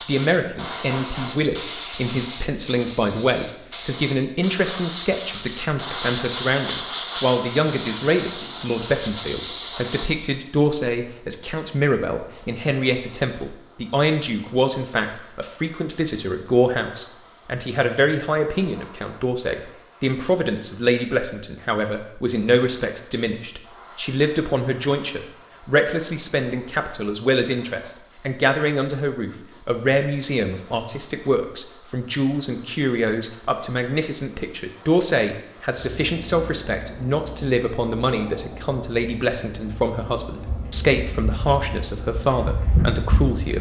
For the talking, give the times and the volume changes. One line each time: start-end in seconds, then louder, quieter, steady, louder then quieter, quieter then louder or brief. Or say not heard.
0.1-43.5 steady.